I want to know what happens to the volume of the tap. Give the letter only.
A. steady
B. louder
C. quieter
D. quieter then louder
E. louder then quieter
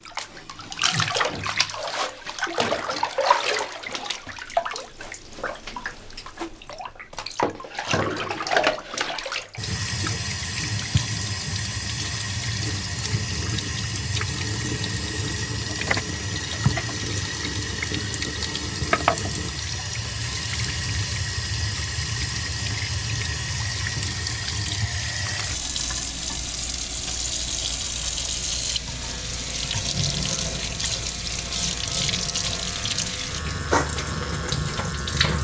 A.